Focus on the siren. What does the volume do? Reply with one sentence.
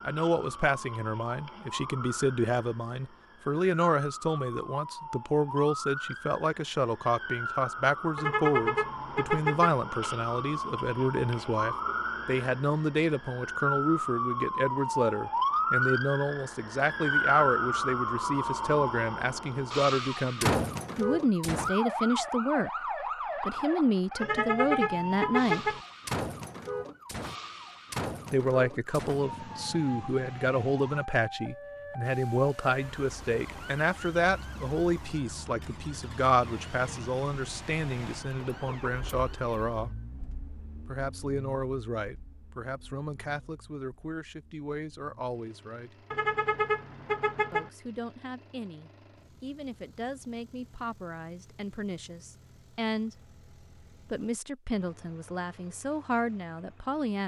The loudness of the siren goes up, then down.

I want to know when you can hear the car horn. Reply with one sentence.
You can hear the car horn from 8.2 to 9.8 s, from 24.2 to 25.8 s and from 46.1 to 47.7 s.